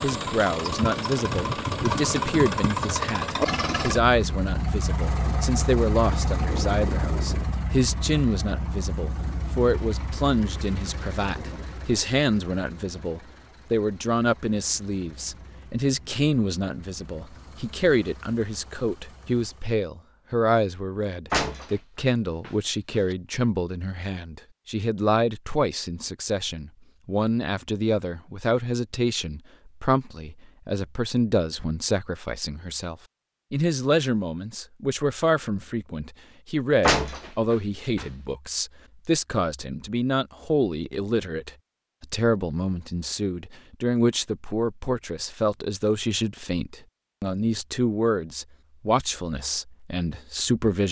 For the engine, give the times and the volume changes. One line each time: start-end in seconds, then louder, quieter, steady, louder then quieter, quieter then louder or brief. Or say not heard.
0.0-19.8 quieter.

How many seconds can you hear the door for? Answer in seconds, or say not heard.
3 s.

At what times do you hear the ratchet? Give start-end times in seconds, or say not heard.
not heard.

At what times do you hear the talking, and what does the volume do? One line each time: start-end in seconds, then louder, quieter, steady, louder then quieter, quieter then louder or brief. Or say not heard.
0.0-50.8 steady.